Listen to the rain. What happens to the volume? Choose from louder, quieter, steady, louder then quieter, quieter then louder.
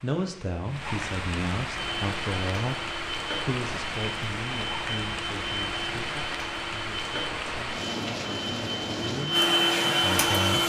steady.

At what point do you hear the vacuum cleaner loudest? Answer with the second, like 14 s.
10 s.